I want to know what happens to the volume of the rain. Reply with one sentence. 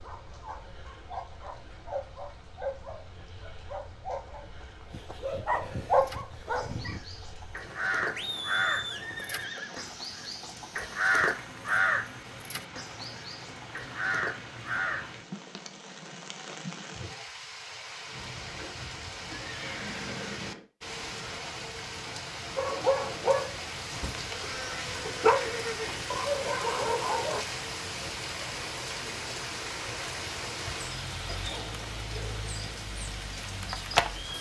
The loudness of the rain goes up.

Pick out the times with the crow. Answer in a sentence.
You can hear the crow from 5.9 to 15.2 s.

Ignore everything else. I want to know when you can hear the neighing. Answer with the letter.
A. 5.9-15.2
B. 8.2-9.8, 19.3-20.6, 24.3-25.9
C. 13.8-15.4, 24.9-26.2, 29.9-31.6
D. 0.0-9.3
B.